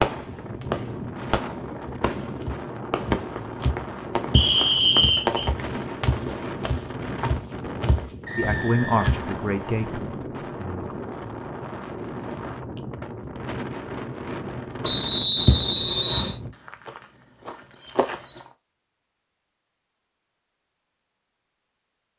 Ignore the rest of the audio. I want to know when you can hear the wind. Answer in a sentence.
The wind can be heard from 0.0 to 16.6 s.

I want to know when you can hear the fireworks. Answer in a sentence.
The fireworks can be heard from 0.0 to 6.6 s.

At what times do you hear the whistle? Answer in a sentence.
The whistle can be heard from 4.3 to 5.5 s, from 8.2 to 10.0 s and from 14.8 to 16.4 s.